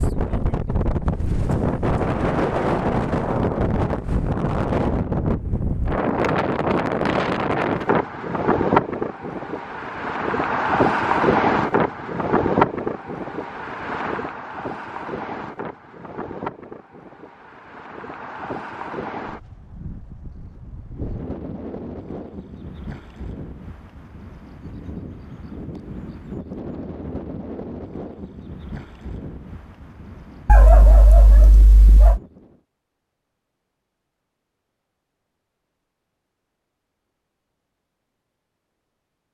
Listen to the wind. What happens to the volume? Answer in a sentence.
The loudness of the wind goes down.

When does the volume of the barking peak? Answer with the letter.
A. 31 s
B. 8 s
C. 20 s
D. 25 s
A.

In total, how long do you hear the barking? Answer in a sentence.
The barking can be heard for 2 seconds in total.